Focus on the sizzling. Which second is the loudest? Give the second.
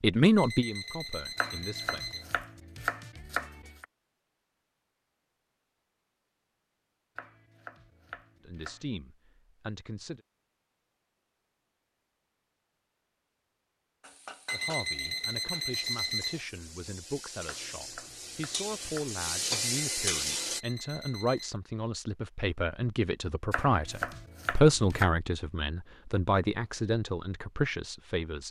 20 s.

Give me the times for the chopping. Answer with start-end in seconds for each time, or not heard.
1.4-3.9, 7.2-8.9, 17.4-19.1, 23.5-25.1.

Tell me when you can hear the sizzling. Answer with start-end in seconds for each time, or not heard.
14.0-20.6.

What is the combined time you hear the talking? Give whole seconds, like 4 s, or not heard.
18 s.